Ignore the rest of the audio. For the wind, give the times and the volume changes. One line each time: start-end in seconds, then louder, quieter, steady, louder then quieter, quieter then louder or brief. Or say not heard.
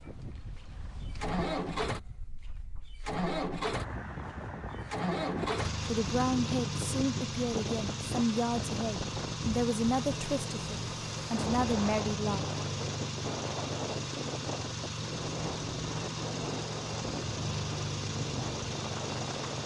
0.0-19.6 louder.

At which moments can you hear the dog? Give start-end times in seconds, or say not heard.
not heard.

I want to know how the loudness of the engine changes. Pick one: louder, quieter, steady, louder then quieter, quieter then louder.
steady.